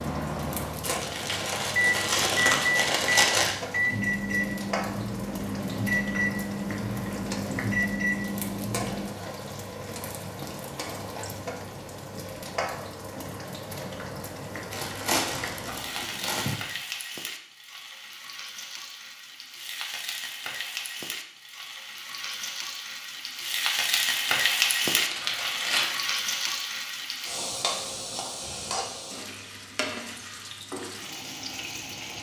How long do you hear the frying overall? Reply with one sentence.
You can hear the frying for 32 seconds altogether.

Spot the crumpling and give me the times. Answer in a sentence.
The crumpling can be heard from 0.8 to 3.5 s, from 14.7 to 16.6 s and from 24.9 to 25.9 s.